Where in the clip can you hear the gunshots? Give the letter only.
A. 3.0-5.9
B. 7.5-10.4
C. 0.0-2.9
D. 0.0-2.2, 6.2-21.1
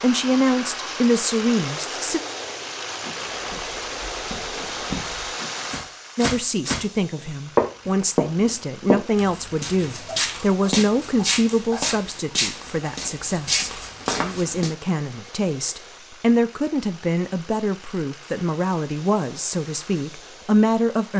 A.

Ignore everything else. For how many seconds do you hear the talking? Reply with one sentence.
The talking can be heard for 17 seconds in total.